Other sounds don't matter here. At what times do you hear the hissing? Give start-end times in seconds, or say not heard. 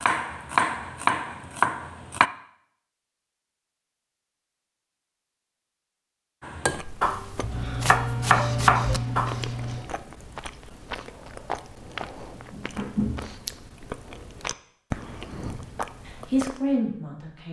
7.4-9.8.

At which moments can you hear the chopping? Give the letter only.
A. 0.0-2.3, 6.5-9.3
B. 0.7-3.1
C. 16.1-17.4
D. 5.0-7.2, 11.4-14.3
A.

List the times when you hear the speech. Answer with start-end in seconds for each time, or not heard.
16.1-17.4.